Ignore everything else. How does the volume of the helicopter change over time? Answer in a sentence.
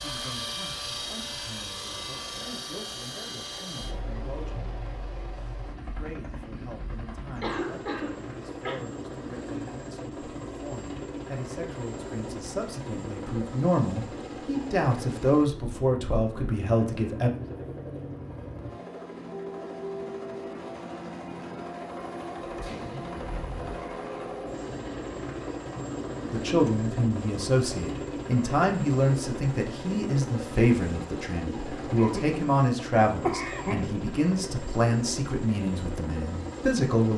The volume of the helicopter stays about the same.